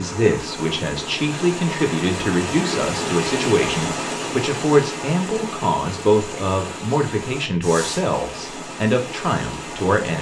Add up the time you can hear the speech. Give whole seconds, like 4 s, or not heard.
10 s.